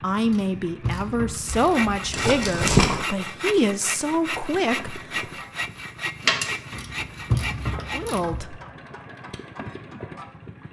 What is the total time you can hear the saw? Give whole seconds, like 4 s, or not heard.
7 s.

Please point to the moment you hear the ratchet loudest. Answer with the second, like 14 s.
7 s.